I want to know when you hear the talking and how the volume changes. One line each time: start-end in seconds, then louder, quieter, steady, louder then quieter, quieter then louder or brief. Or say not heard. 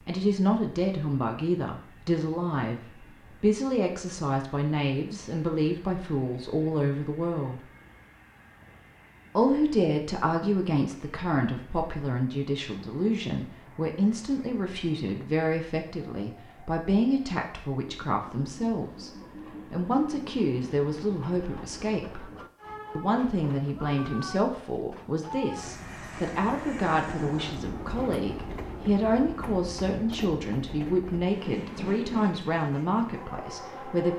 0.0-7.6 steady
9.3-22.2 steady
22.9-34.1 steady.